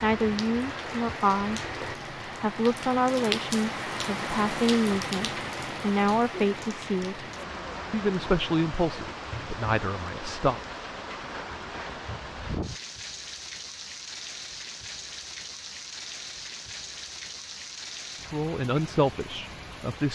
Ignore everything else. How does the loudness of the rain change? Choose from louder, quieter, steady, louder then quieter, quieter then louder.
quieter.